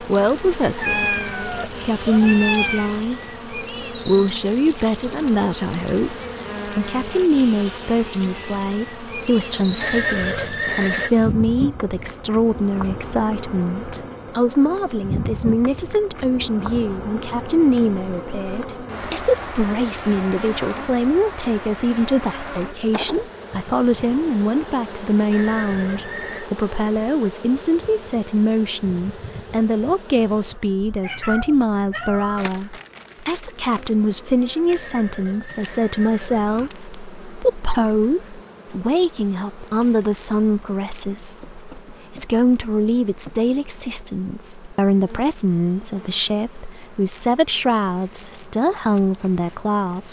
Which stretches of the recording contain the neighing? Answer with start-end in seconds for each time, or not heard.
9.8-11.1, 25.3-26.5, 34.6-36.7.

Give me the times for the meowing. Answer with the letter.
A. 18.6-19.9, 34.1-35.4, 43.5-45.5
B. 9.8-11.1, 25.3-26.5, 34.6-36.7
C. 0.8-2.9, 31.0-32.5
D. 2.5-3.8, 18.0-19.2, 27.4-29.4
C.